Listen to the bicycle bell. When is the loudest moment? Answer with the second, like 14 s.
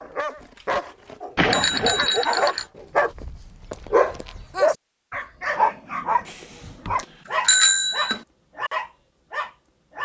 8 s.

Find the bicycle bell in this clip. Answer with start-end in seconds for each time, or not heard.
1.4-2.6, 6.2-8.2.